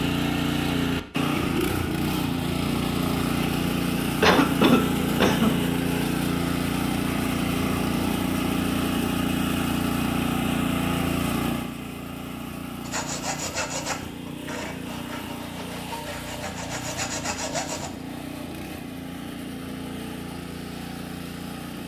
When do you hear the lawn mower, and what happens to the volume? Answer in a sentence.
The lawn mower can be heard from 0.0 to 21.8 s, getting quieter.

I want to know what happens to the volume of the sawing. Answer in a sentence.
The loudness of the sawing goes down, then up.